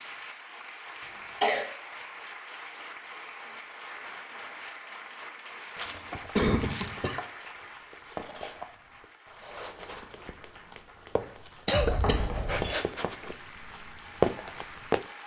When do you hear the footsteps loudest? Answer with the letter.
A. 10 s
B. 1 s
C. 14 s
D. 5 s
C.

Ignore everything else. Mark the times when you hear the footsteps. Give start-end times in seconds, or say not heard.
7.4-15.1.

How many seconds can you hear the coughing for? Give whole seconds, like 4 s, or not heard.
3 s.